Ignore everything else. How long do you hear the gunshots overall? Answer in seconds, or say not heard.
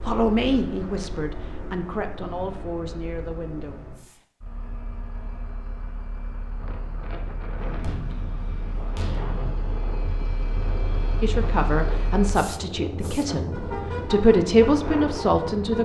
2 s.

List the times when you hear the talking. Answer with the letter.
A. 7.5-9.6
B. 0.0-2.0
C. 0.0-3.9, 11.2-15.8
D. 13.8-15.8
C.